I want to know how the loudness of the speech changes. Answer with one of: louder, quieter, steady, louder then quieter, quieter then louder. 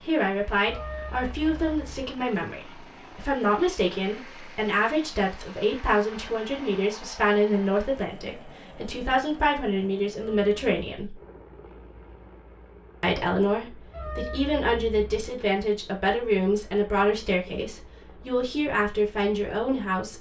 steady.